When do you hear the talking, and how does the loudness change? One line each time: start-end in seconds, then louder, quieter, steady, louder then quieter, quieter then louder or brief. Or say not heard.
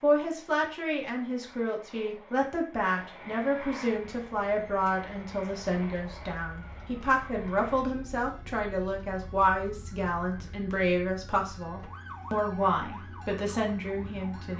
0.0-14.5 steady.